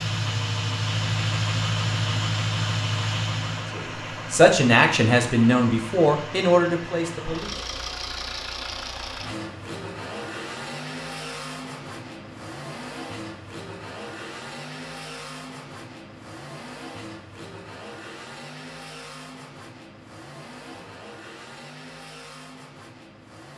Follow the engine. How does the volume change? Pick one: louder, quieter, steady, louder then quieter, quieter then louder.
quieter.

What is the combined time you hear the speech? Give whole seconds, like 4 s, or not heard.
4 s.